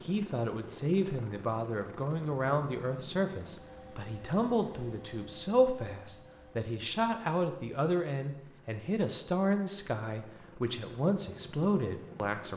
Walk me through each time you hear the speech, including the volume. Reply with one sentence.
The speech can be heard from 0.0 to 12.5 s, at a steady volume.